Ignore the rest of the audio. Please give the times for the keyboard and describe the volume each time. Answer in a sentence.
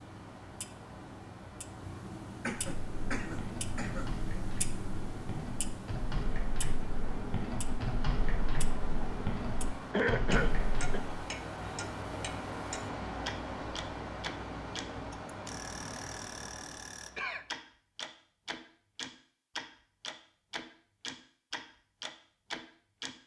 You can hear the keyboard from 2.8 to 11.1 s, getting louder.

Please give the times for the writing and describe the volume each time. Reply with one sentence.
You can't hear the writing here.